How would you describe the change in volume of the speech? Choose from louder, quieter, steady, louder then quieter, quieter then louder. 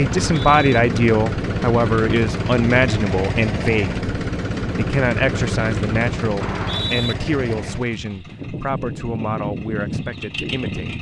quieter.